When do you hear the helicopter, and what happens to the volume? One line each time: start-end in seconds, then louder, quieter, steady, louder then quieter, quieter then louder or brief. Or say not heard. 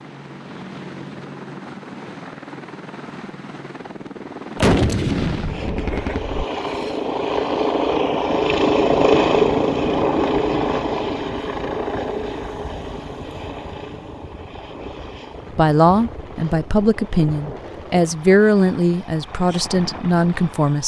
0.0-20.8 louder then quieter.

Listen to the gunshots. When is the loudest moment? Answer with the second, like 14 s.
5 s.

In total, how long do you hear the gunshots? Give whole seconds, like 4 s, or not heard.
2 s.